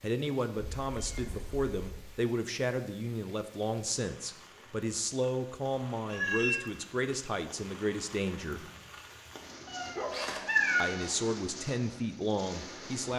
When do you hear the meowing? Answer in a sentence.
You can hear the meowing from 0.6 to 2.0 s, from 6.1 to 6.7 s and from 9.7 to 11.1 s.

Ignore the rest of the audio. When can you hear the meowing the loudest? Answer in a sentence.
The loudest moment of the meowing is at 11 seconds.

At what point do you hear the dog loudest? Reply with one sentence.
The volume of the dog peaks at 10 seconds.